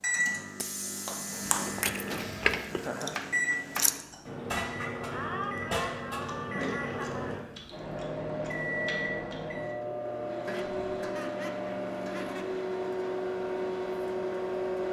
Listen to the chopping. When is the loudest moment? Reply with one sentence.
The loudest moment of the chopping is at 4 seconds.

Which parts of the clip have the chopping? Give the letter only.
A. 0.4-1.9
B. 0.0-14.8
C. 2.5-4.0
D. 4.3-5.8
C.